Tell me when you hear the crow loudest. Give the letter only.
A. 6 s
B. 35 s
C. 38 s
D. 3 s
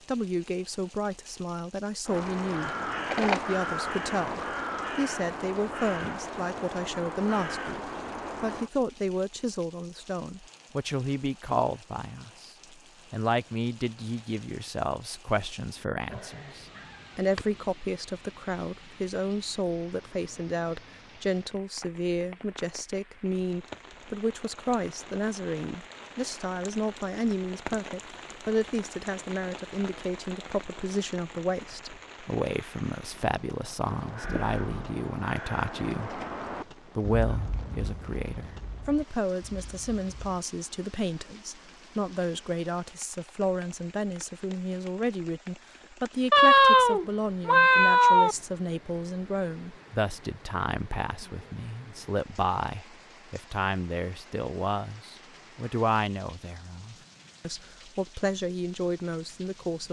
D.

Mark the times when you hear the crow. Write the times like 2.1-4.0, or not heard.
2.0-8.7, 33.8-40.4.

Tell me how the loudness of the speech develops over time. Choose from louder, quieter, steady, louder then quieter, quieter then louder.
steady.